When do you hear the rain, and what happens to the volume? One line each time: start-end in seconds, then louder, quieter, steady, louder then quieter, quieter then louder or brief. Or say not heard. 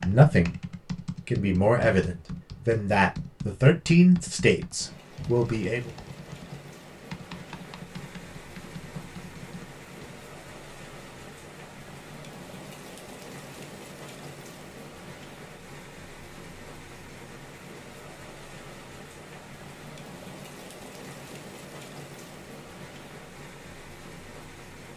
4.8-24.9 steady.